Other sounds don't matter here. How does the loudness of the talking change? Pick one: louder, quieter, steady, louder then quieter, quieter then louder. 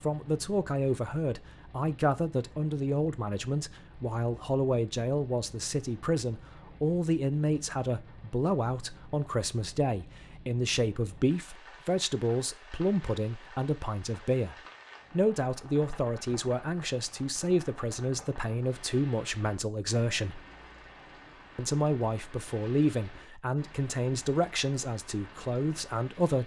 steady.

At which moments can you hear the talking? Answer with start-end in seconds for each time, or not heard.
0.0-20.4, 21.6-26.4.